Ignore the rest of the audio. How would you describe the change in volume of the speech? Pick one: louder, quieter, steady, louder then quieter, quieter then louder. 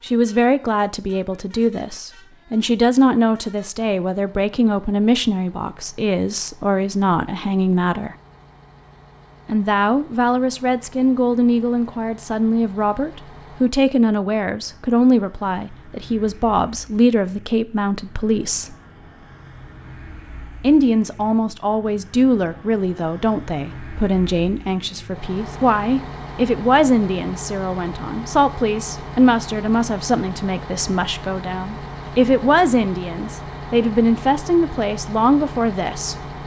steady.